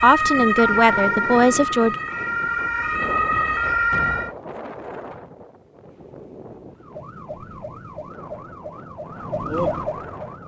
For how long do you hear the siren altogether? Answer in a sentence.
You can hear the siren for 8 seconds altogether.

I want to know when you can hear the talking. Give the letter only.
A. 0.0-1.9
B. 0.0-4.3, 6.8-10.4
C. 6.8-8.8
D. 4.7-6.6
A.